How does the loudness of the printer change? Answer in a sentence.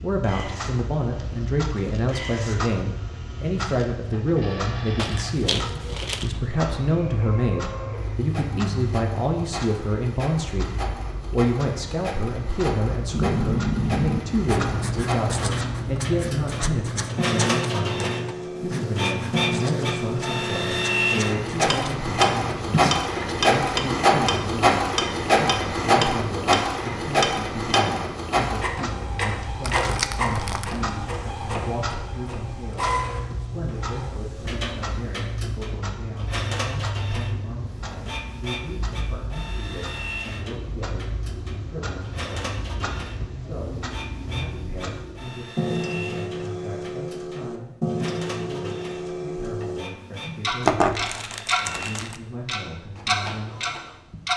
The volume of the printer goes up, then down.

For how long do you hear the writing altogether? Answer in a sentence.
The writing can be heard for 10 seconds in total.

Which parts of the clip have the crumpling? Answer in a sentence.
The crumpling can be heard from 5.0 to 6.3 s, from 29.6 to 30.8 s and from 50.6 to 52.1 s.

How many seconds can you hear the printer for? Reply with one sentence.
You can hear the printer for 54 seconds altogether.